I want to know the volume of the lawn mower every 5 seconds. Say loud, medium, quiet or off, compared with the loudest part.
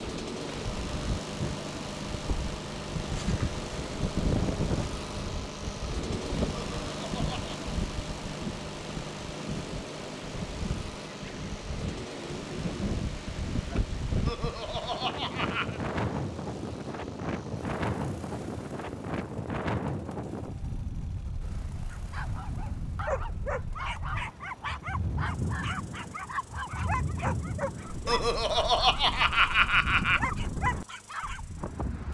loud, loud, medium, medium, quiet, quiet, quiet.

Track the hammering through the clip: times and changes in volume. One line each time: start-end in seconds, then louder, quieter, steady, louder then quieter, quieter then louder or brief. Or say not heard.
not heard.